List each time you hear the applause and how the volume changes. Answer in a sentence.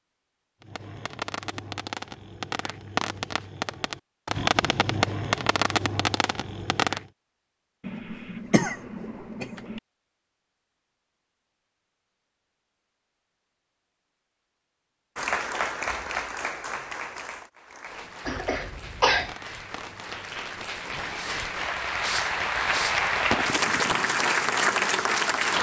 You can hear the applause from 15.2 to 25.5 s, getting quieter then louder.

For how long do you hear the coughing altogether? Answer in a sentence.
The coughing can be heard for 3 seconds in total.